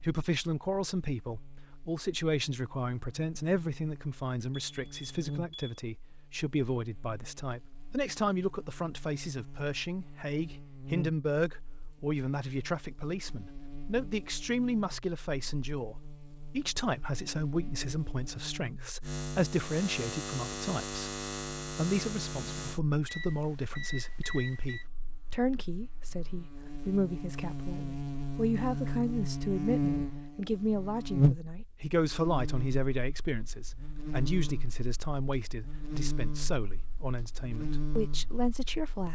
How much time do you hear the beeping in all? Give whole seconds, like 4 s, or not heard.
3 s.